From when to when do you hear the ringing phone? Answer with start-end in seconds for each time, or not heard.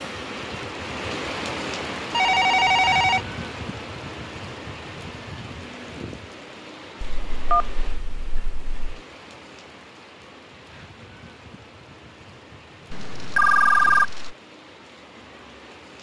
2.1-3.2, 7.0-9.0, 12.9-14.3.